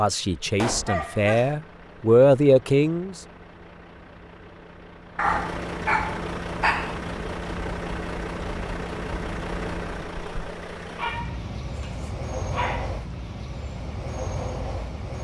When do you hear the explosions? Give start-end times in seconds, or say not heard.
0.6-1.0.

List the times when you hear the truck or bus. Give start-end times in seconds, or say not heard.
0.0-15.1.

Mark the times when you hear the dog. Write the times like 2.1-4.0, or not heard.
0.8-1.6, 5.2-7.0, 10.9-12.9.